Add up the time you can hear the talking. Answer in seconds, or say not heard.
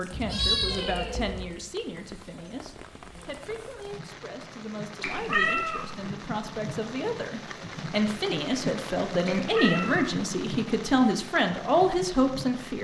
13 s.